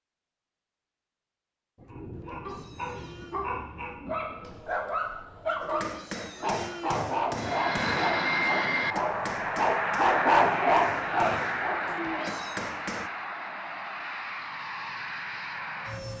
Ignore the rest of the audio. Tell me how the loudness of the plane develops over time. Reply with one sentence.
The volume of the plane goes down.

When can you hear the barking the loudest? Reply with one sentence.
The loudest moment of the barking is at 10 seconds.